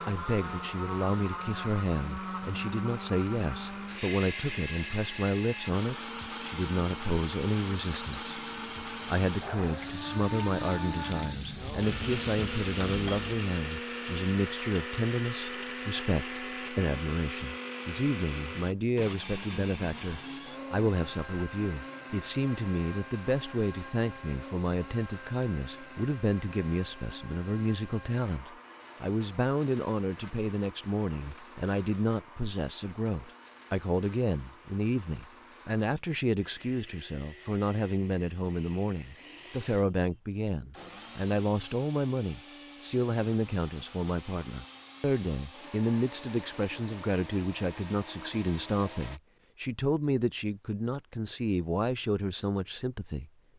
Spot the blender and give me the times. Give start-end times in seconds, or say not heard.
0.0-49.2.